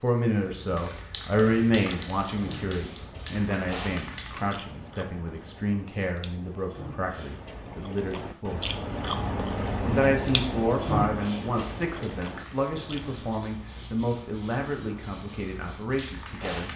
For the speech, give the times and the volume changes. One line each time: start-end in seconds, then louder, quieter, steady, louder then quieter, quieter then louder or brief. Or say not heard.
0.0-8.7 quieter
9.8-16.7 quieter.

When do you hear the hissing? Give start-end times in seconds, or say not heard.
0.0-4.5, 11.3-16.7.